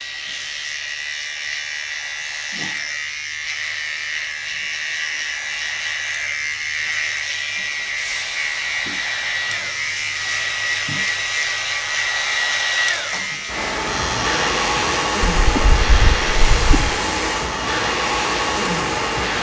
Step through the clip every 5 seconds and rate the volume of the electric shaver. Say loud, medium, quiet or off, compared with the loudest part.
loud, loud, loud, medium.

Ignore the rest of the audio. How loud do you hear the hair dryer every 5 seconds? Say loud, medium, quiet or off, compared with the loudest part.
quiet, medium, loud, loud.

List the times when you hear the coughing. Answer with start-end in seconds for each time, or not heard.
15.3-17.0.